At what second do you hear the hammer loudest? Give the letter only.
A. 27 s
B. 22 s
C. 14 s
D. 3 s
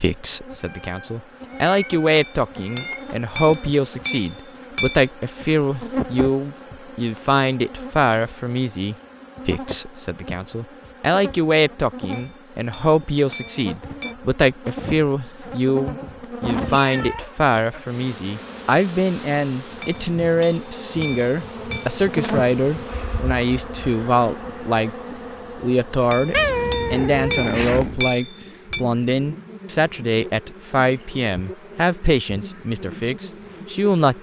A.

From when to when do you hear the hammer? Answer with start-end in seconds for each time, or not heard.
2.1-5.1, 12.1-14.2, 19.8-21.9, 26.1-28.8.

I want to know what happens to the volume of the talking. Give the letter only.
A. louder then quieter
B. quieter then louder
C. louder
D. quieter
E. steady
E.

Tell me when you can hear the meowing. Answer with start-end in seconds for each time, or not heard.
0.6-3.0, 16.6-17.9, 26.3-28.1.